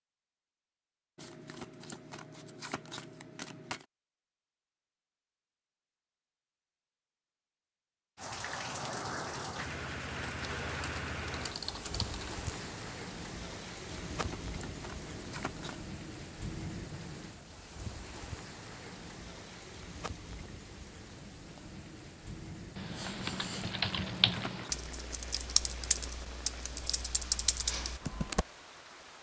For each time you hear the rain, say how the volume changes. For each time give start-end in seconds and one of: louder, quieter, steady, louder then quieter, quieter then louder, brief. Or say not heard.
8.2-29.1 quieter.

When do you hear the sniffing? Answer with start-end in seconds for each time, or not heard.
22.9-23.8.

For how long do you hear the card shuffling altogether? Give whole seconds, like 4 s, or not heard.
7 s.